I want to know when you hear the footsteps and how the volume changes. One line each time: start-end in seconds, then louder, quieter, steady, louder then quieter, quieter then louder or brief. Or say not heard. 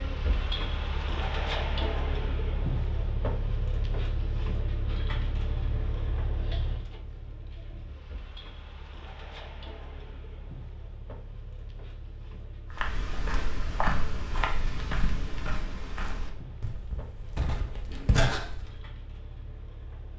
12.7-18.8 quieter then louder.